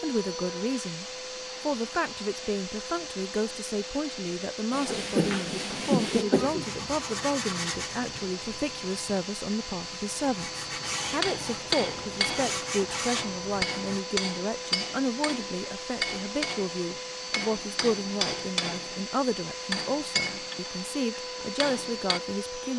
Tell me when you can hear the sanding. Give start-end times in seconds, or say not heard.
4.7-14.0.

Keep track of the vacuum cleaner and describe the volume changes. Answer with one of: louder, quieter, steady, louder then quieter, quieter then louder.
steady.